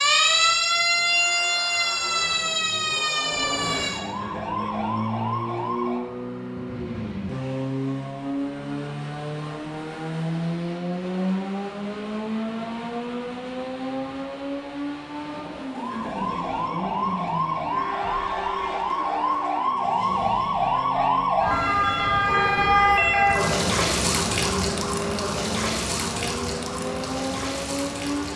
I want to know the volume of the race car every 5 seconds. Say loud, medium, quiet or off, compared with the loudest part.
medium, loud, loud, medium, medium, loud.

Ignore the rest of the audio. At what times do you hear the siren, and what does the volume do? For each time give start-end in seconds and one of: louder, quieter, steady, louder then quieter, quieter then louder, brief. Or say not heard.
0.0-6.0 quieter
15.7-28.3 louder then quieter.